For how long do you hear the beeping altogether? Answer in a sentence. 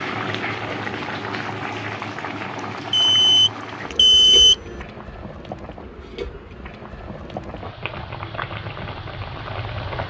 The beeping can be heard for 2 seconds in total.